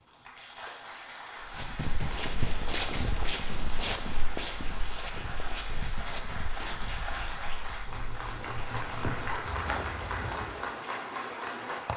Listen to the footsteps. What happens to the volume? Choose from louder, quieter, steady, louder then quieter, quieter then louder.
quieter then louder.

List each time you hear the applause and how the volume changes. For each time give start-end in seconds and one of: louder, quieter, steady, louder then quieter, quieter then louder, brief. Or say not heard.
0.0-11.9 louder.